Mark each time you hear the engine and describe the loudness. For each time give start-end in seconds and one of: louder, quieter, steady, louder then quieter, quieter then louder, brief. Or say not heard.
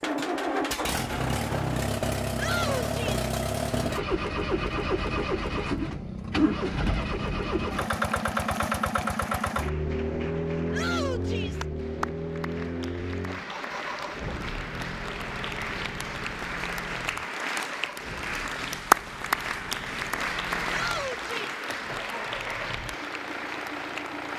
0.0-24.3 quieter.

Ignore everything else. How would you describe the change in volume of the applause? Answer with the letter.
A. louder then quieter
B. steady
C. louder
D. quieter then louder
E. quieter
A.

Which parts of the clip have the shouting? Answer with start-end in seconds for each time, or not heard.
2.4-3.2, 10.7-11.7, 20.7-21.5.